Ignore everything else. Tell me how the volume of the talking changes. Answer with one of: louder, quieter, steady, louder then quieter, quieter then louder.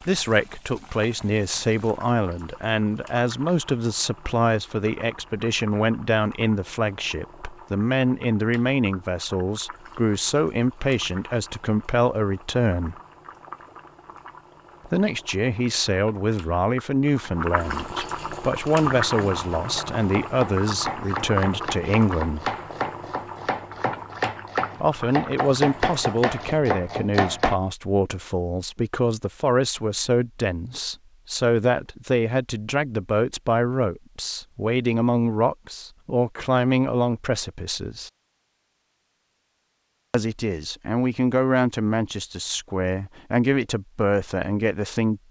steady.